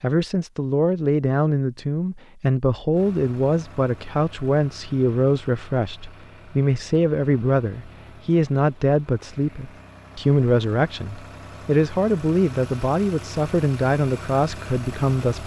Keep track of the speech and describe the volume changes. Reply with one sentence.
The loudness of the speech stays about the same.